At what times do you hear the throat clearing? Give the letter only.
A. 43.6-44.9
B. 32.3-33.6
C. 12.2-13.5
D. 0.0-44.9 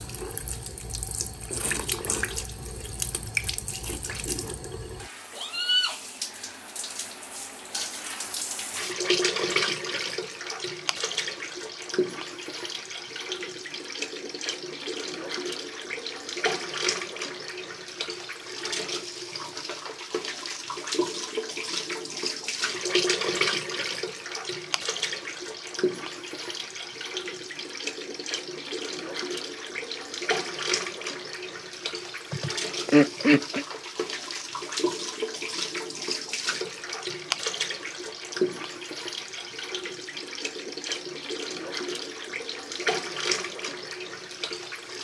B.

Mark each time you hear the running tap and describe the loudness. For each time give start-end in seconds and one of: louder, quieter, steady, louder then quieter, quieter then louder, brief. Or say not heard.
0.0-44.9 steady.